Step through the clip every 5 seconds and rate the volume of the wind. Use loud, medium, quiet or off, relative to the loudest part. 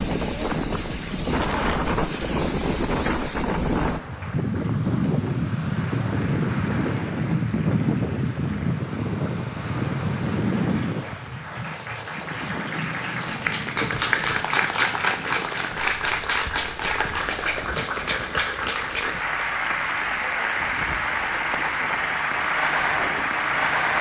loud, loud, medium, quiet, quiet.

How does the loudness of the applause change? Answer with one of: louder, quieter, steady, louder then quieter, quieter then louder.
louder.